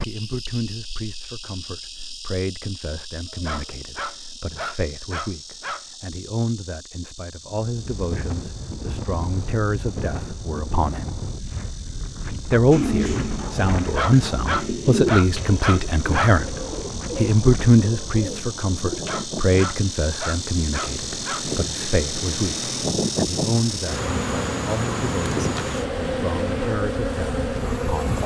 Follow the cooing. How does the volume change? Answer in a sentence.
The loudness of the cooing goes up, then down.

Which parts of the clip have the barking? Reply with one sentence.
The barking can be heard from 3.3 to 5.8 s, from 13.8 to 16.4 s and from 18.9 to 21.4 s.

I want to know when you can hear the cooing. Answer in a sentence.
The cooing can be heard from 12.7 to 19.1 s.